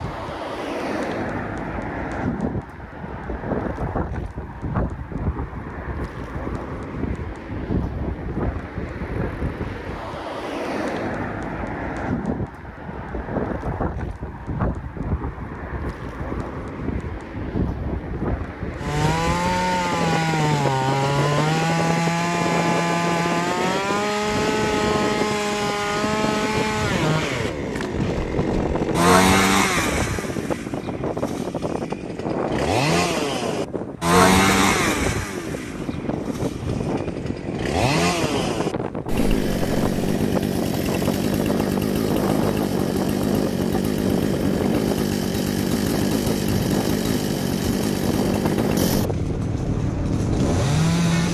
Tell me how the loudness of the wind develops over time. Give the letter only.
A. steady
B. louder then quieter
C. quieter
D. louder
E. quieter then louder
A.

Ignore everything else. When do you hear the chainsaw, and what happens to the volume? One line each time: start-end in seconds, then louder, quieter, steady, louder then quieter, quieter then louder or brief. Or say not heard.
18.8-51.3 steady.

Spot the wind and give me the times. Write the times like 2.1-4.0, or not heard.
0.0-51.3.